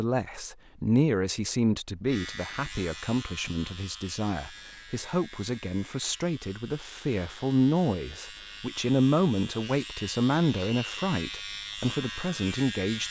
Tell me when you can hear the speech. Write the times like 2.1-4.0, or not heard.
0.0-13.0.